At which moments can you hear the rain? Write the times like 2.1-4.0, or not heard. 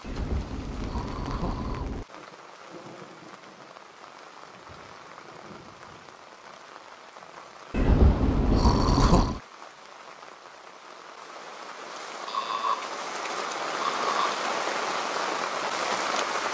0.0-16.4.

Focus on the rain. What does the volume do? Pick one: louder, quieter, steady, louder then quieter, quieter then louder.
louder.